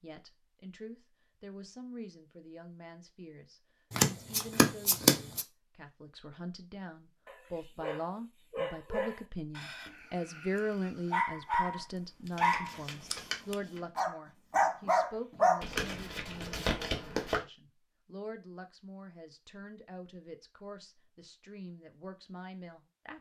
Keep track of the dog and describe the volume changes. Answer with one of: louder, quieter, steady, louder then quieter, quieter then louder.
quieter then louder.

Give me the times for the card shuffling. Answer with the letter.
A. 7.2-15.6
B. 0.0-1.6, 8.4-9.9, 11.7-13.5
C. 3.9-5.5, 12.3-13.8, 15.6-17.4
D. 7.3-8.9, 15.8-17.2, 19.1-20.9
C.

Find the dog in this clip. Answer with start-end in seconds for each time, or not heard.
7.2-15.6.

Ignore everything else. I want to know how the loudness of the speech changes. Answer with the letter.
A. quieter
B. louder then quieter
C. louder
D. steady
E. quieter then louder
B.